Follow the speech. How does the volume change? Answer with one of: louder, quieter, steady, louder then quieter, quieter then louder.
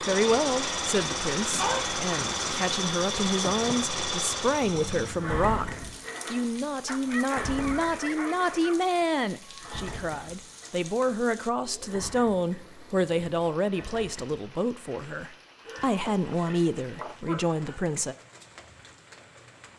steady.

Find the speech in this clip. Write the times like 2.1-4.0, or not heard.
0.0-18.1.